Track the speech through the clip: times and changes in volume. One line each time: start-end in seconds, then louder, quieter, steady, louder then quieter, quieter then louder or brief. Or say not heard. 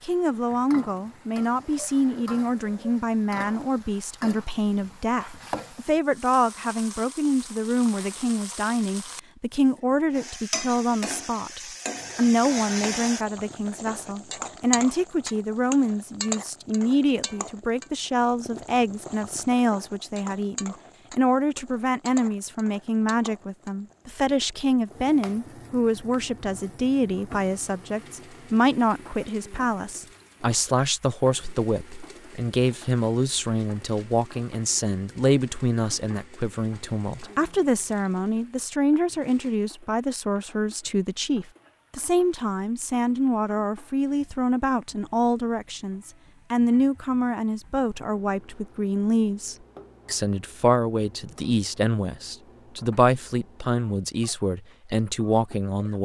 0.0-56.0 steady.